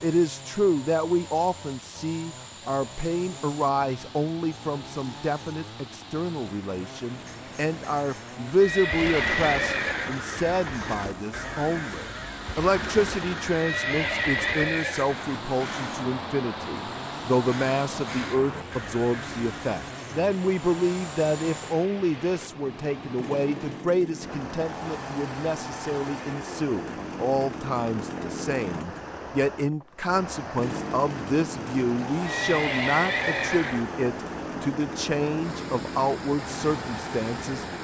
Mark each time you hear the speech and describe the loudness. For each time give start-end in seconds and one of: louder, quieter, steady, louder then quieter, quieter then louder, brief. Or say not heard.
0.0-37.6 steady.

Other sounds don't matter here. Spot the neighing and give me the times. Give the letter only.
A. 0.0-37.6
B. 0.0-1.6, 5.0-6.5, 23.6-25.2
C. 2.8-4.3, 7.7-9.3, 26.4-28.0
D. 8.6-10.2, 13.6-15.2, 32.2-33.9
D.